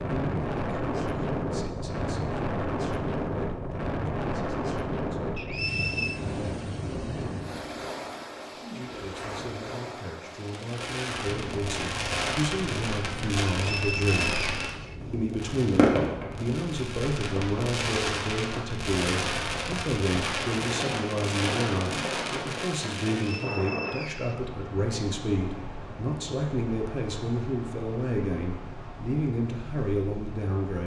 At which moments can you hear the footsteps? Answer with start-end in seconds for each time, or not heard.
not heard.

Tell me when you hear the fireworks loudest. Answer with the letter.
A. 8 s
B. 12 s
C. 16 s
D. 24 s
C.